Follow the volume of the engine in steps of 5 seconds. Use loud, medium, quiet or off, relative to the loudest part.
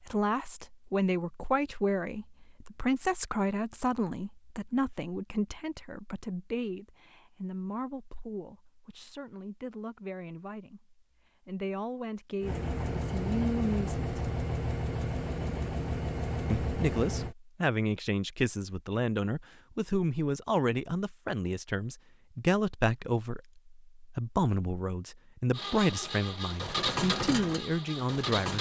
off, off, loud, loud, off, loud.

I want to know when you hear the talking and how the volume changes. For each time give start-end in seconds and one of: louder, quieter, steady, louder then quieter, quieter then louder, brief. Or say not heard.
0.1-14.1 quieter then louder
16.5-28.5 steady.